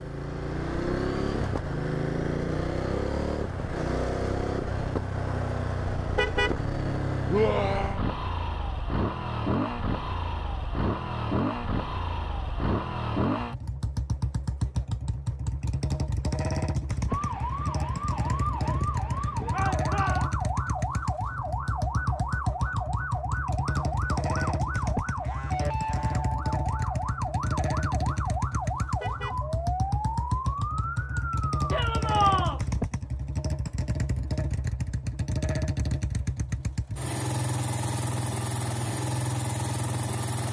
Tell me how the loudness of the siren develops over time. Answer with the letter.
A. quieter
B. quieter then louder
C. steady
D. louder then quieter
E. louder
C.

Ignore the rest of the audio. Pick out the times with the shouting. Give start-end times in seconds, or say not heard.
7.3-8.0, 19.5-20.3, 31.7-32.6.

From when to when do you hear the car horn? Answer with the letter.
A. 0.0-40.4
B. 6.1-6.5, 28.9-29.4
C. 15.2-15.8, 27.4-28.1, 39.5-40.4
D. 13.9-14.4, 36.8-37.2
B.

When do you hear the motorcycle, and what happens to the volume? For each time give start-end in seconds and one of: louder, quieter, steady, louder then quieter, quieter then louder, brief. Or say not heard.
0.0-40.4 steady.